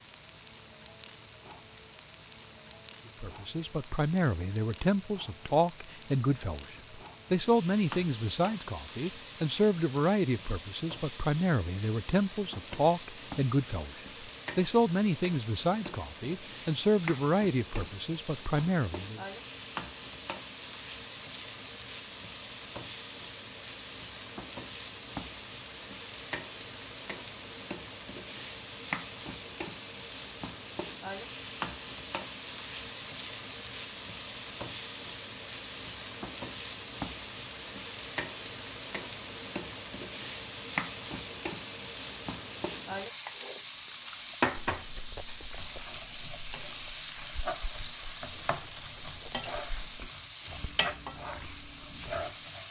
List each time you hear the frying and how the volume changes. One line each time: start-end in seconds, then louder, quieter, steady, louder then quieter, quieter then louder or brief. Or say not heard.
0.0-52.6 louder.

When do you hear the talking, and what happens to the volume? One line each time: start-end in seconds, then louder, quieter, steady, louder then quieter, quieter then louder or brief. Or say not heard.
3.2-19.2 steady.